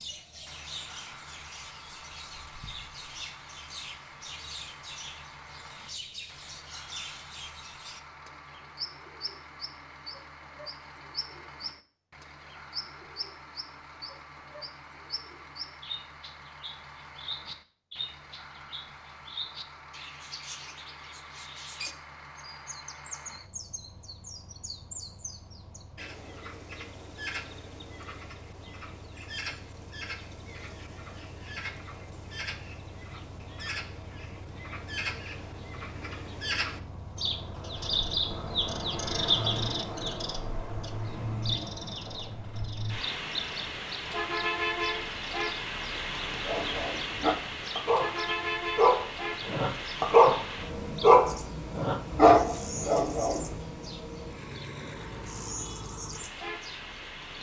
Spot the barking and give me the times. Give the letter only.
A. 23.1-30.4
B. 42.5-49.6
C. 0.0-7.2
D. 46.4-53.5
D.